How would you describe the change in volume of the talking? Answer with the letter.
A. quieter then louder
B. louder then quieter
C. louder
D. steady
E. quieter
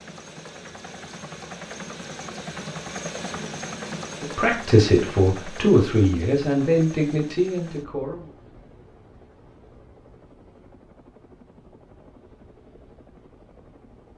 E.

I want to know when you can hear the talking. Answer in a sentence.
The talking can be heard from 4.2 to 8.3 s.